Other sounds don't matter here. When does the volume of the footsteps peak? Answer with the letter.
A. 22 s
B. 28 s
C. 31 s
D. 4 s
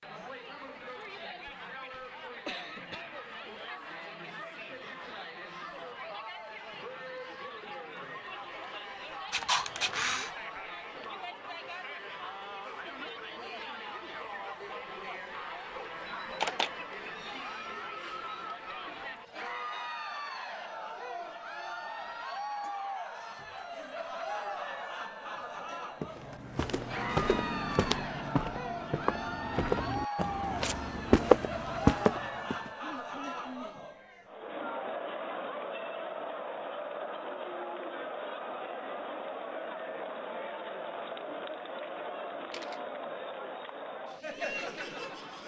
C.